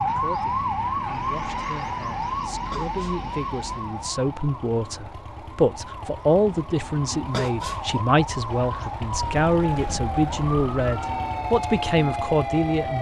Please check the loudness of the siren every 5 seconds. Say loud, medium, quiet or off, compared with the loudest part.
loud, medium, loud.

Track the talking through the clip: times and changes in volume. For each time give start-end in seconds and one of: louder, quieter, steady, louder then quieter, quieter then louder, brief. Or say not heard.
0.0-12.9 louder.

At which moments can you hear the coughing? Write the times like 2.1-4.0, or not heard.
2.7-3.2, 7.3-8.0.